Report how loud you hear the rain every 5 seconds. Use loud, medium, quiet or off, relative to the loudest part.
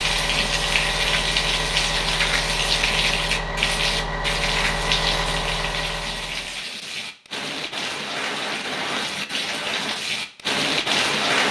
loud, medium, loud.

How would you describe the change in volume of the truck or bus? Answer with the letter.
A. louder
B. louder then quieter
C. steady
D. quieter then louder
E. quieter
C.